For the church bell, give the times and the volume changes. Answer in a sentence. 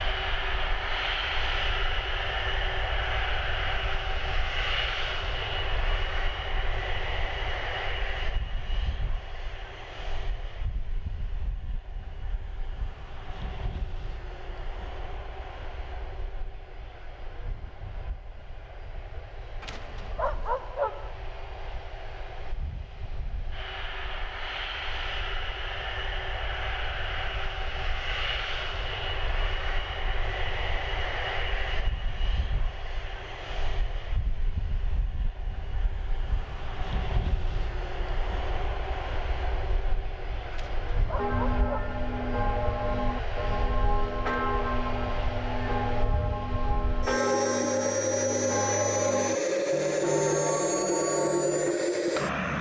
The church bell can be heard from 41.1 to 52.2 s, at a steady volume.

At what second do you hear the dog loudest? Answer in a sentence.
The volume of the dog peaks at 21 seconds.